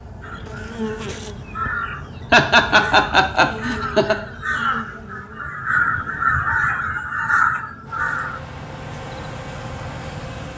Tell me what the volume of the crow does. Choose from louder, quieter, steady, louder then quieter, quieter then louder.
louder.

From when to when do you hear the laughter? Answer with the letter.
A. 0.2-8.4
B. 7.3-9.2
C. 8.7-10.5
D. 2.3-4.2
D.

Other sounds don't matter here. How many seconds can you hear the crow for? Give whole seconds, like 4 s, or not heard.
8 s.